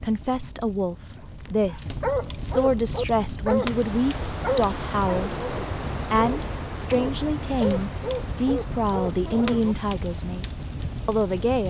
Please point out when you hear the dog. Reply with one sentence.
You can hear the dog from 1.4 to 9.8 s.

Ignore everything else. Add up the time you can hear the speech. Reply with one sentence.
You can hear the speech for 11 seconds altogether.